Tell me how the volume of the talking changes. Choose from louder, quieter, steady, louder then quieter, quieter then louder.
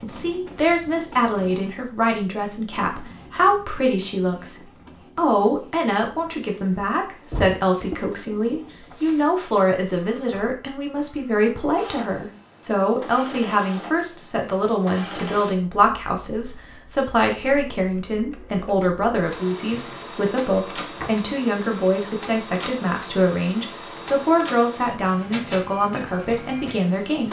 steady.